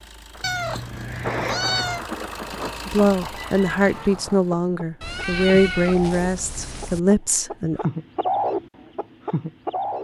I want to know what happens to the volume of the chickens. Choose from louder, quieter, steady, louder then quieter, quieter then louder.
louder.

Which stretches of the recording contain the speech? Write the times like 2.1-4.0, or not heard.
2.9-7.8.